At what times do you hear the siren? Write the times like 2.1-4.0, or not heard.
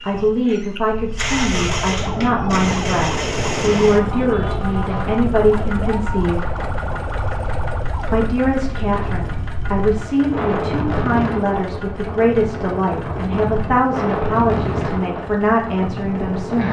1.5-8.2.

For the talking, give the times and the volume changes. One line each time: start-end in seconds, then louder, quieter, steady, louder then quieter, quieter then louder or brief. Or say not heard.
0.0-6.5 steady
8.1-16.6 steady.